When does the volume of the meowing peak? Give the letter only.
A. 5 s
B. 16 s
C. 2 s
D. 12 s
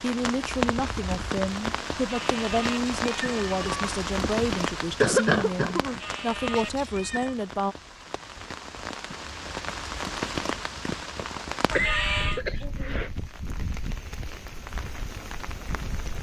D.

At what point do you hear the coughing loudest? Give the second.
5 s.